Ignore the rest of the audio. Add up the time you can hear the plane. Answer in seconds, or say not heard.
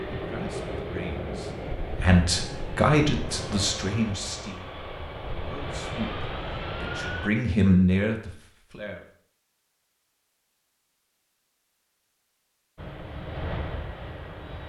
9 s.